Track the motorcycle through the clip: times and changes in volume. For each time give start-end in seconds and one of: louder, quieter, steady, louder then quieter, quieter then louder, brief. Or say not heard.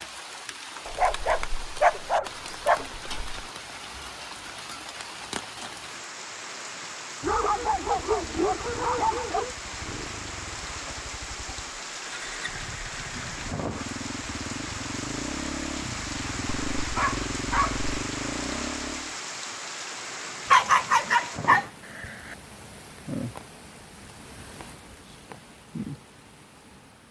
7.5-19.1 louder.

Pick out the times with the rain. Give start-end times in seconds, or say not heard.
0.0-27.0.